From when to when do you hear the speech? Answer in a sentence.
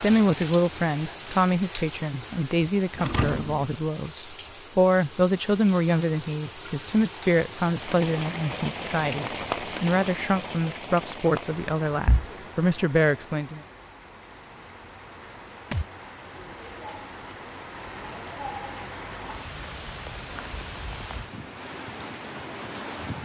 You can hear the speech from 0.0 to 13.6 s.